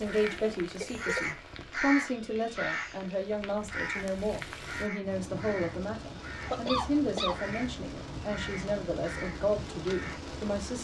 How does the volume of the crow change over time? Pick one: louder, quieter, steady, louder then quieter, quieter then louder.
quieter.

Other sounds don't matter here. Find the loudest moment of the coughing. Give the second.
7 s.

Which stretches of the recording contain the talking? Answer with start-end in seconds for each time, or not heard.
0.0-10.7.